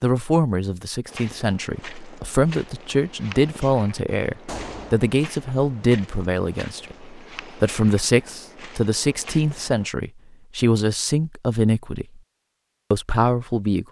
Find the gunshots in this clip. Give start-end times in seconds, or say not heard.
4.5-5.0.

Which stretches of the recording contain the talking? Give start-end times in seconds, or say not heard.
0.0-12.2, 12.9-13.8.